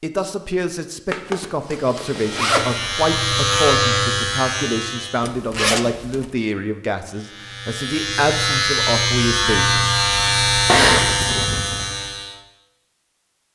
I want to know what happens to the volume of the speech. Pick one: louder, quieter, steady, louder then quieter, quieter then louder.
steady.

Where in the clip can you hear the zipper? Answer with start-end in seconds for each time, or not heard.
1.1-2.8, 5.2-6.3, 10.7-11.9.